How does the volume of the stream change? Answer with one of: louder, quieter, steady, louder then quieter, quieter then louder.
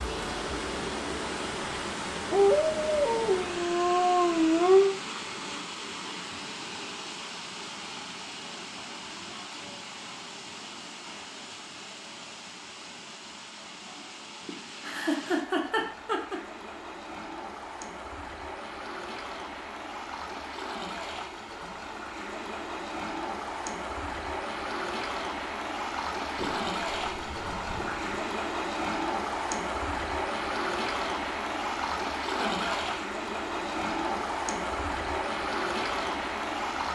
quieter then louder.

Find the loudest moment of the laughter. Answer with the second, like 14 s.
15 s.